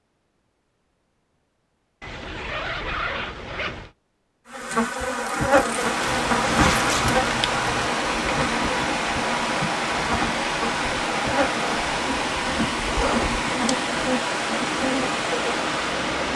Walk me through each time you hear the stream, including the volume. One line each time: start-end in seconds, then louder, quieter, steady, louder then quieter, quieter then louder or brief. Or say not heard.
5.5-16.3 steady.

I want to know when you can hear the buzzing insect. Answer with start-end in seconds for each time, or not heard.
4.5-16.3.